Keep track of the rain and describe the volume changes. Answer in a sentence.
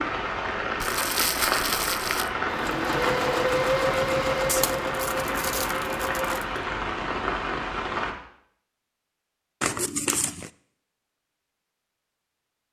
The volume of the rain stays about the same.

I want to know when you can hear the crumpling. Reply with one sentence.
The crumpling can be heard from 0.8 to 2.3 s, from 4.5 to 6.5 s and from 9.6 to 10.5 s.